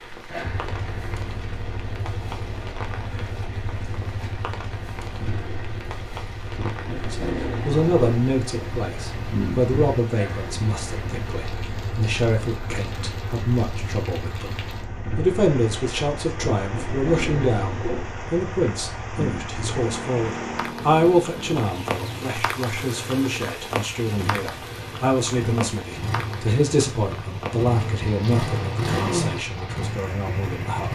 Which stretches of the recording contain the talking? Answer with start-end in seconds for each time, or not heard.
7.0-30.9.